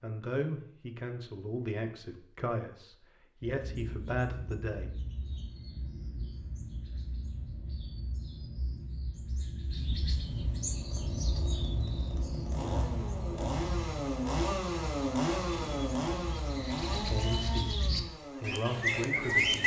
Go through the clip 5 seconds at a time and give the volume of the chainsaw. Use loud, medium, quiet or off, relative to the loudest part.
off, off, loud, loud.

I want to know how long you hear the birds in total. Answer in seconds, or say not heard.
16 s.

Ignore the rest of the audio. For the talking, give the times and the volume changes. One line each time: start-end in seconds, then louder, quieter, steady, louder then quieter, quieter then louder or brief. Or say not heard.
0.0-4.9 steady
16.9-19.6 brief.